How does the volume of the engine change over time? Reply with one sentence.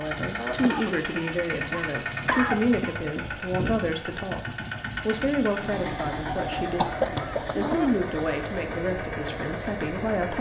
The volume of the engine stays about the same.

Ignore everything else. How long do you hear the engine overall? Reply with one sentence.
You can hear the engine for 10 seconds altogether.